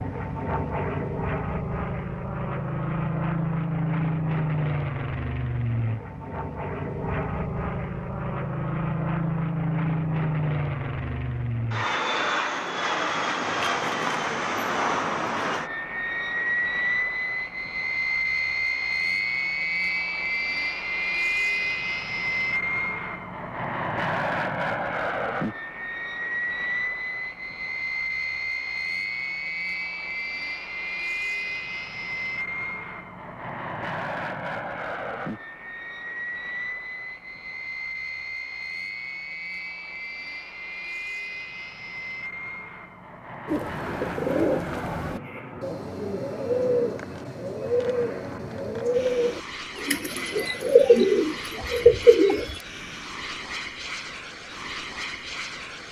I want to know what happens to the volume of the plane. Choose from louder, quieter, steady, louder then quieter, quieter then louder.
quieter.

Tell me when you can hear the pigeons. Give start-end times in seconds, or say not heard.
43.5-52.6.